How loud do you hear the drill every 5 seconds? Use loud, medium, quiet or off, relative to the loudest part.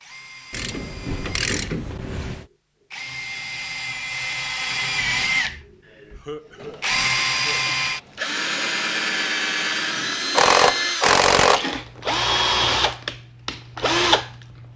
medium, loud, loud.